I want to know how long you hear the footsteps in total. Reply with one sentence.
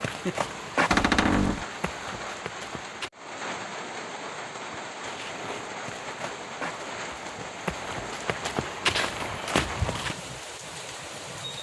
You can hear the footsteps for 8 seconds altogether.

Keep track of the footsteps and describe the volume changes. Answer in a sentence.
The volume of the footsteps goes down, then up.